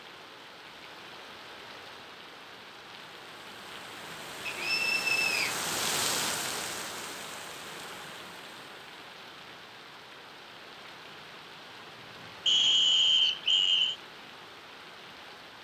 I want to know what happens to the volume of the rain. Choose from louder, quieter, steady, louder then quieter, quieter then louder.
louder then quieter.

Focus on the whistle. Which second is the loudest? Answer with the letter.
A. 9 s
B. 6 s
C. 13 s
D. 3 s
C.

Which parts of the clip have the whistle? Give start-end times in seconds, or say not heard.
4.5-5.5, 12.4-13.9.